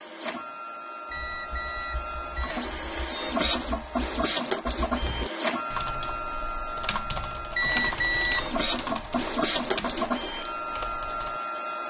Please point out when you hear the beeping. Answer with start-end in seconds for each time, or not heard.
1.1-2.6, 7.5-8.4.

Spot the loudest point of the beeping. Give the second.
8 s.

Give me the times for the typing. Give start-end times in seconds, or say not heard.
1.1-11.4.